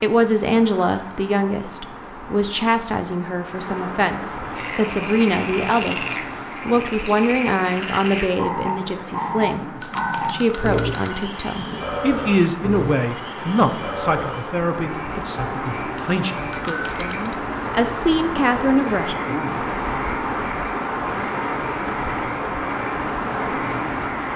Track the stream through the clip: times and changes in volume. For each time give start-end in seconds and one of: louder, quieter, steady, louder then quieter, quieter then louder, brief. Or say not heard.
0.1-24.3 louder.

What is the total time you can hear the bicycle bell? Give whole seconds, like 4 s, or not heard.
3 s.